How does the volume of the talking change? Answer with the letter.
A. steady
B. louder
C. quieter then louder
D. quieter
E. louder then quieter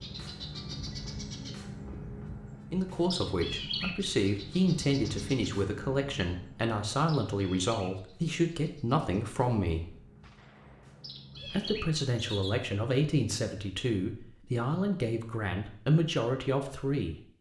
A.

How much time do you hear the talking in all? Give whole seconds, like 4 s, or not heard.
13 s.